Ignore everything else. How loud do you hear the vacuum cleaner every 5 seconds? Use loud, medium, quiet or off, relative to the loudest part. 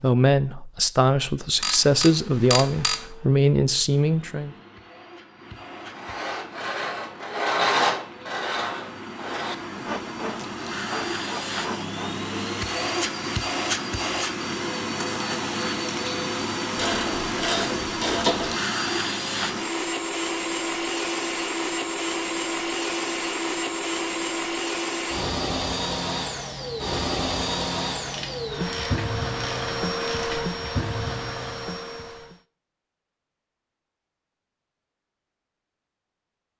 quiet, quiet, loud, loud, loud, loud, loud, off.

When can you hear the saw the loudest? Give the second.
8 s.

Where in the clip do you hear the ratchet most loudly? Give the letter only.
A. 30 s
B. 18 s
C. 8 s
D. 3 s
B.